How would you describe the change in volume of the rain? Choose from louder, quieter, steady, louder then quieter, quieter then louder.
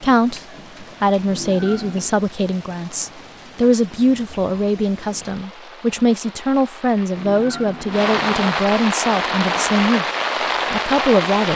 louder.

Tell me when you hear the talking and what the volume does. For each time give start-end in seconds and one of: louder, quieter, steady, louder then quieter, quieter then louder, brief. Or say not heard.
0.0-10.1 steady
10.7-11.5 brief.